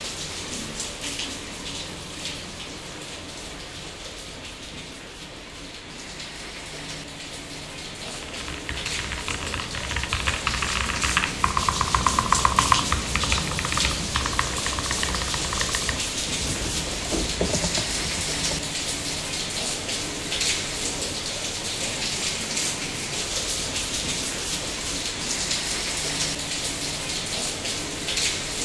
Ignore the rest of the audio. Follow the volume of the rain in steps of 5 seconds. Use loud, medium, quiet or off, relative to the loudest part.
medium, medium, loud, loud, loud, loud.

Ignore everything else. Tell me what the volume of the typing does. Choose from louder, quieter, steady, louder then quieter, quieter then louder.
louder then quieter.